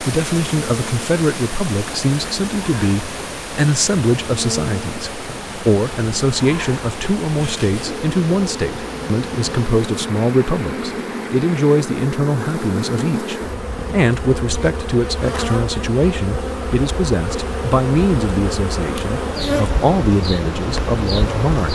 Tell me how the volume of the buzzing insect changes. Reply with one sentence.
The loudness of the buzzing insect goes up.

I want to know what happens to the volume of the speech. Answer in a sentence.
The loudness of the speech stays about the same.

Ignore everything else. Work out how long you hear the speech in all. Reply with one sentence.
The speech can be heard for 22 seconds in total.